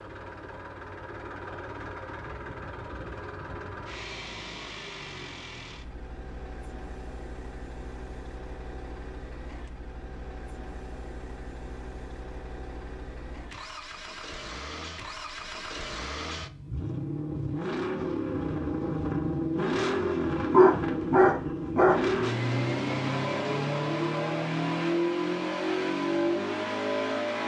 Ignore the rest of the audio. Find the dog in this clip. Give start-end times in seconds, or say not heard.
20.5-22.0.